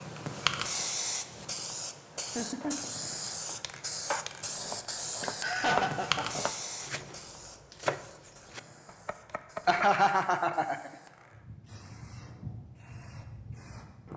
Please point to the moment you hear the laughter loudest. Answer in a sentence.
The volume of the laughter peaks at 10 seconds.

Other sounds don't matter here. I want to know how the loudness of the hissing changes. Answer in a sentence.
The loudness of the hissing goes down, then up.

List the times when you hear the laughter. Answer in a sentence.
You can hear the laughter from 2.1 to 2.9 s, from 5.2 to 6.4 s and from 9.7 to 10.9 s.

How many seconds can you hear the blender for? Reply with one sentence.
You can't hear the blender here.